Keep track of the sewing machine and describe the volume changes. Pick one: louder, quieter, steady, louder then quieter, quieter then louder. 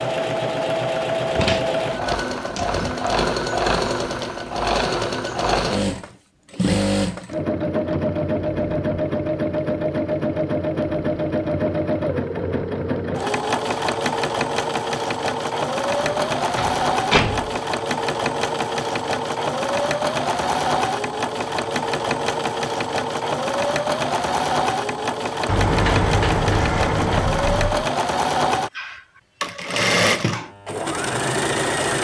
steady.